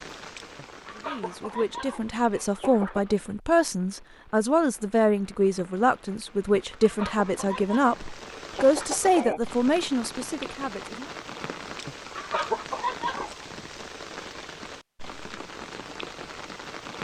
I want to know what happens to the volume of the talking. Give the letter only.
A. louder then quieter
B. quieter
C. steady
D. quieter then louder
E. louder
C.